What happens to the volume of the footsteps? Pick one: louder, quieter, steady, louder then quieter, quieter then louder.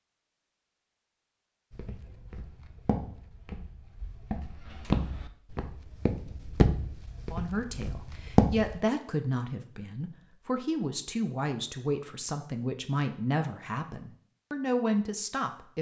louder.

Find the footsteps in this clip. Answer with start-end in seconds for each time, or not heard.
1.7-8.8.